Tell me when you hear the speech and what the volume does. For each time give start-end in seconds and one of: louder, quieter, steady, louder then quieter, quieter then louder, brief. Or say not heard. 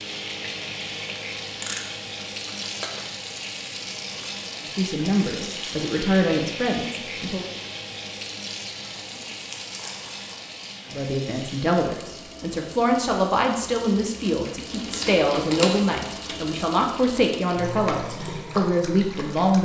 4.6-7.5 brief
10.9-19.6 steady.